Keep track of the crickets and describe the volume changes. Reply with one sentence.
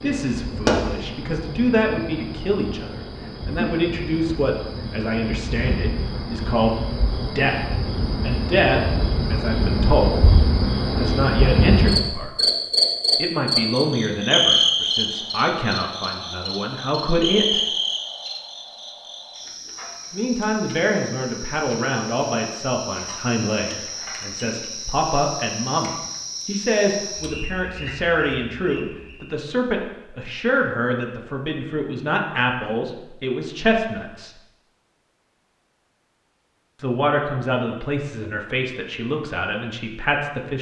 The volume of the crickets goes up, then down.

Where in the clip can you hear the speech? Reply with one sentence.
The speech can be heard from 0.0 to 12.4 s, from 13.2 to 17.6 s, from 20.1 to 34.4 s and from 36.8 to 40.5 s.